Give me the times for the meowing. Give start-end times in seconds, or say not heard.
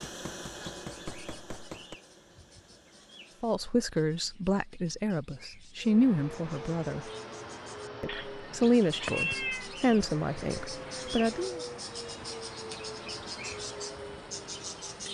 8.1-9.7.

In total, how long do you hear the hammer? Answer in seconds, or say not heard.
2 s.